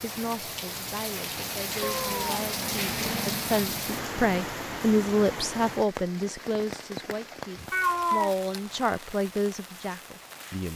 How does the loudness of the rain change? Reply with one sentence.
The volume of the rain goes down.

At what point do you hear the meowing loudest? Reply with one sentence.
The loudest moment of the meowing is at 8 seconds.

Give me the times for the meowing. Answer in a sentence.
The meowing can be heard from 1.8 to 3.6 s and from 7.7 to 8.3 s.